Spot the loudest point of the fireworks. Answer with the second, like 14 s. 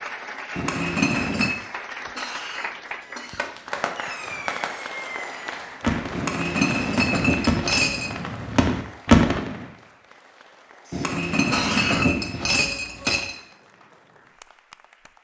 9 s.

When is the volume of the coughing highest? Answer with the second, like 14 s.
12 s.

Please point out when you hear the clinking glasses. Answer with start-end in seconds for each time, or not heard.
0.6-1.6, 6.1-8.2, 10.9-13.3.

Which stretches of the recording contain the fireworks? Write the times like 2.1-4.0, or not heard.
3.0-9.6.